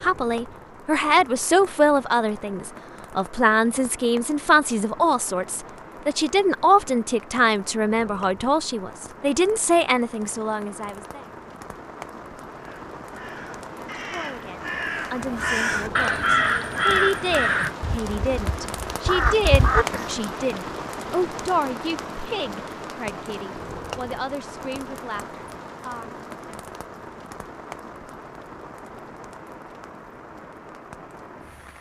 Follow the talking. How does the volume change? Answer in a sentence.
The loudness of the talking goes down.